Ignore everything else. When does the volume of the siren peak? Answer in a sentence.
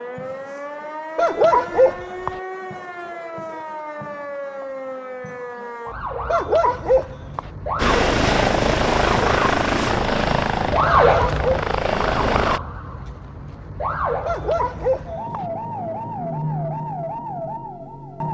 The loudest moment of the siren is at 11 seconds.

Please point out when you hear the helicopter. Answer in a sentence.
You can hear the helicopter from 7.8 to 12.6 s.